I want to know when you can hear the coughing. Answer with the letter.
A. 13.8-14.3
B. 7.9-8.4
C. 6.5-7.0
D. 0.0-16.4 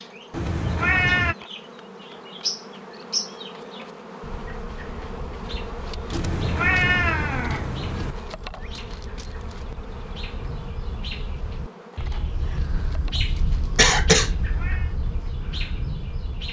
A.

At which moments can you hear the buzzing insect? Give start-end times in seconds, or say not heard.
0.0-16.4.